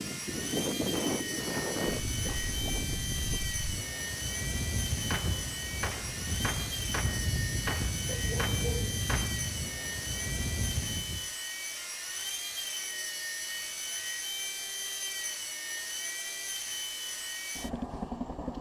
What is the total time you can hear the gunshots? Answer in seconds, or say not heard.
4 s.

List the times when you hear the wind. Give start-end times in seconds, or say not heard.
0.0-11.3.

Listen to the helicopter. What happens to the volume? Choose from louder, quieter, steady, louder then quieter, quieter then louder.
steady.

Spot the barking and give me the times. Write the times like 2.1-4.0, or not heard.
8.1-9.0.